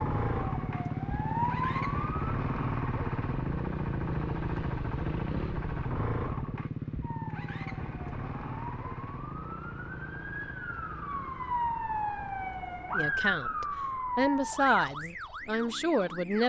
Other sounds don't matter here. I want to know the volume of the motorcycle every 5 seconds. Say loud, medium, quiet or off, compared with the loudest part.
loud, loud, quiet, quiet.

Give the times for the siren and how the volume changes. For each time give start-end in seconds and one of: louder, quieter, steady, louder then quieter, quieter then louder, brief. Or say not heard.
0.0-2.3 brief
7.0-16.4 louder then quieter.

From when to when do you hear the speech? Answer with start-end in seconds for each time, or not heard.
12.9-16.4.